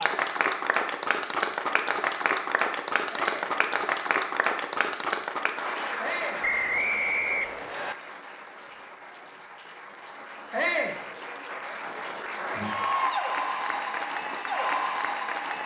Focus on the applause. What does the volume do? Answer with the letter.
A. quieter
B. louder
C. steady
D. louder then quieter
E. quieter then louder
E.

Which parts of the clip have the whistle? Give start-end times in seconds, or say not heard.
6.4-8.0.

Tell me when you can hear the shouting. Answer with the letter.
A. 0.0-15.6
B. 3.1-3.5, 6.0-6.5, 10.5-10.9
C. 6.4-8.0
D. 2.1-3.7
B.